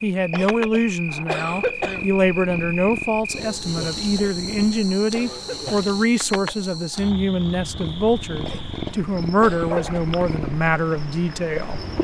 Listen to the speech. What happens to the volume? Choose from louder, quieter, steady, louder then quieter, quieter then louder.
steady.